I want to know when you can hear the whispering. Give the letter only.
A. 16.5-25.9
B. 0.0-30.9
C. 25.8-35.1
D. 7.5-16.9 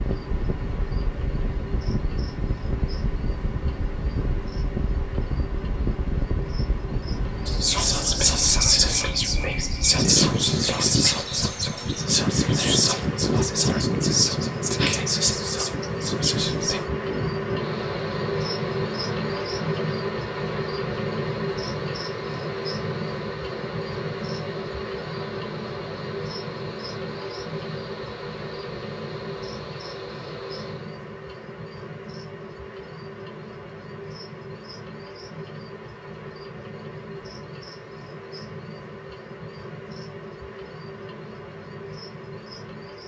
D.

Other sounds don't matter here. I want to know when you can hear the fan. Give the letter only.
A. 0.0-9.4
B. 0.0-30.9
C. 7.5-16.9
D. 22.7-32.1
B.